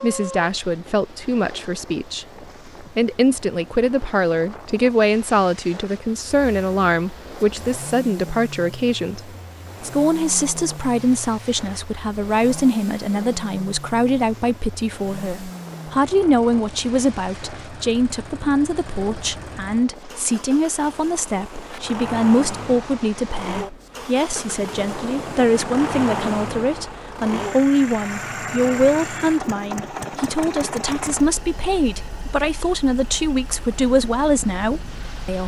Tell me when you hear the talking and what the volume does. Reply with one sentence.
You can hear the talking from 0.0 to 35.4 s, at a steady volume.